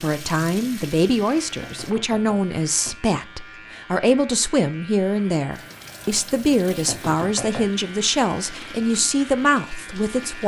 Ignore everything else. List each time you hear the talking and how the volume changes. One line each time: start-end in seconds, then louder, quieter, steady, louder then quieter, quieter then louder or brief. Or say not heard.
0.0-10.4 steady.